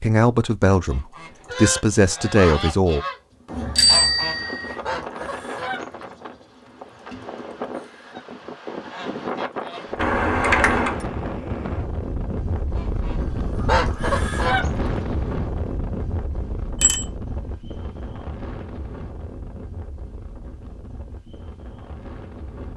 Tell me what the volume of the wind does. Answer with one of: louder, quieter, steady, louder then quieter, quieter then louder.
louder then quieter.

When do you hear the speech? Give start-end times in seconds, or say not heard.
0.0-3.0.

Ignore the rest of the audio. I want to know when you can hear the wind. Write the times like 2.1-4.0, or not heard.
4.3-22.7.